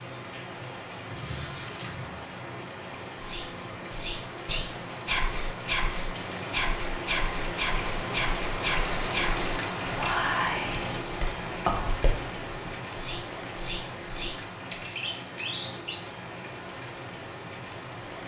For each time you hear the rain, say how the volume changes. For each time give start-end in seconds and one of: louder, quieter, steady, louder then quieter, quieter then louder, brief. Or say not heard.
0.0-18.2 louder then quieter.